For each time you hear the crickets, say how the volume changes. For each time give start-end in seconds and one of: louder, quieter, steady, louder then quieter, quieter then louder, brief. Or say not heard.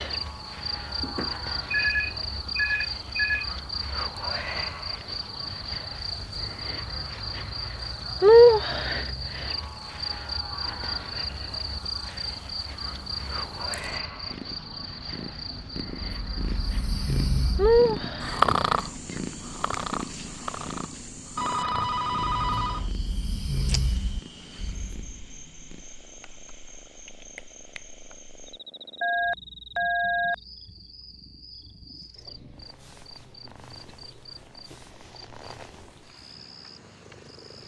0.0-37.6 louder then quieter.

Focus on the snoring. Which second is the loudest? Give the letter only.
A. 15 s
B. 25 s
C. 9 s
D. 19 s
D.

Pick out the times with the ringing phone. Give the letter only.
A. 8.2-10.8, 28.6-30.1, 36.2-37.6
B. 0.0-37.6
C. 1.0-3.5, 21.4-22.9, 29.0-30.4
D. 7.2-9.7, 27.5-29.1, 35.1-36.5
C.